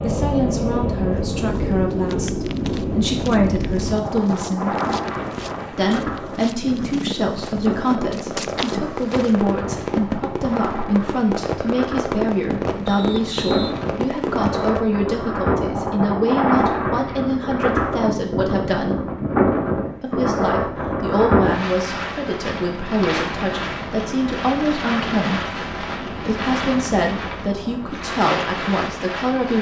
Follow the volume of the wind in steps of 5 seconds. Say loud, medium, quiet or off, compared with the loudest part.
loud, medium, medium, loud, loud, medium.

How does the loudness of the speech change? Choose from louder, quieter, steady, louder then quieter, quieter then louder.
steady.